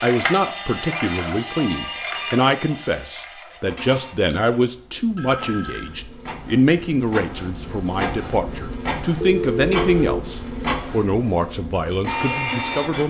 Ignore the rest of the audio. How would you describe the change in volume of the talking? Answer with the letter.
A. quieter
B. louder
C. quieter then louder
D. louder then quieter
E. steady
E.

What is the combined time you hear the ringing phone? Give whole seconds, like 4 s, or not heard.
3 s.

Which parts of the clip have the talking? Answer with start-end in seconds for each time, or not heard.
0.0-13.0.